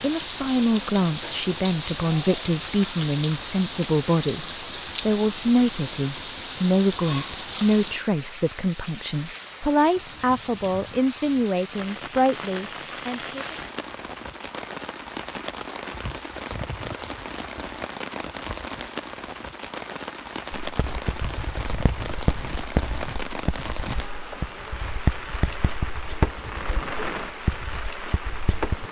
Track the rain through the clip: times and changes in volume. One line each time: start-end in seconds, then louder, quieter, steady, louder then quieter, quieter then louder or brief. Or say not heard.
0.0-28.8 steady.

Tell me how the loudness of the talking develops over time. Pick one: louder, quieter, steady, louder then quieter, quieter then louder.
steady.